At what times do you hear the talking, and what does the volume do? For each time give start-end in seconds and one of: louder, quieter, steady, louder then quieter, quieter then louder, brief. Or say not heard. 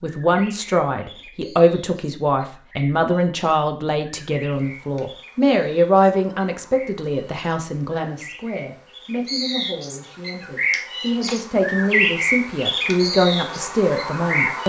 0.0-14.6 quieter then louder.